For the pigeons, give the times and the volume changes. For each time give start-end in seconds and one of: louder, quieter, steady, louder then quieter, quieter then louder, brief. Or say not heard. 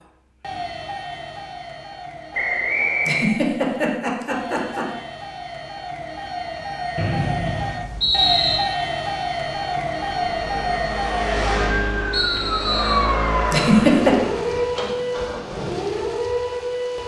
not heard.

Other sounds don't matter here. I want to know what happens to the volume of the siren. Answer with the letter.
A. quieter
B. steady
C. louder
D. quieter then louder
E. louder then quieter
C.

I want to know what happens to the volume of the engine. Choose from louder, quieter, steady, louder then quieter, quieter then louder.
louder then quieter.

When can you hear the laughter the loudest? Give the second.
14 s.